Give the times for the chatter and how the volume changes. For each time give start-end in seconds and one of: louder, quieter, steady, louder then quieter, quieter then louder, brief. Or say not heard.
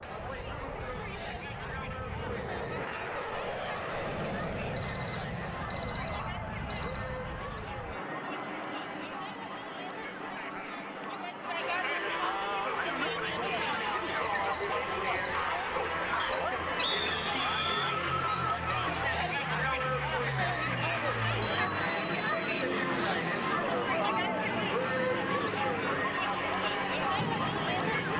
0.0-28.1 louder.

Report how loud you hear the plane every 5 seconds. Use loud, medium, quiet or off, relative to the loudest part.
loud, loud, medium, medium, loud, loud.